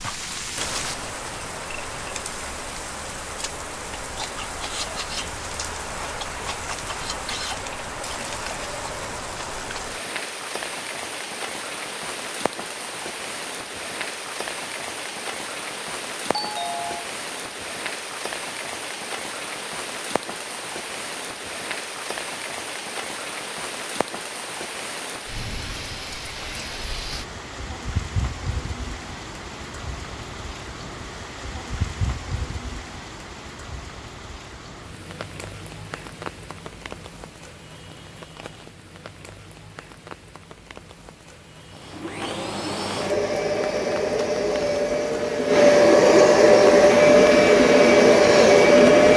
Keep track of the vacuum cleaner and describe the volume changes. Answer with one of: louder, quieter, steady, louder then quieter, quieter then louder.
louder.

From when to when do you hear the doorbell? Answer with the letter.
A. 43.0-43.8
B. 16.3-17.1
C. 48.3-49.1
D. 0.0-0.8
B.